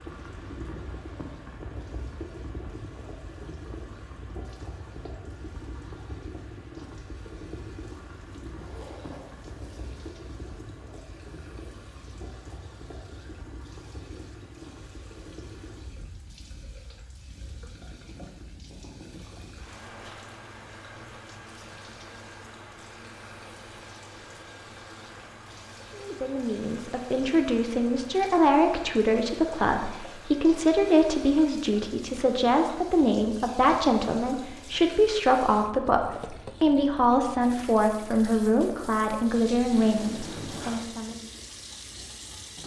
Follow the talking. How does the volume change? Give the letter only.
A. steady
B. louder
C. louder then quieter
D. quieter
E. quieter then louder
A.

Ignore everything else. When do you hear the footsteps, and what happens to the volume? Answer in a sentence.
The footsteps can't be heard in this clip.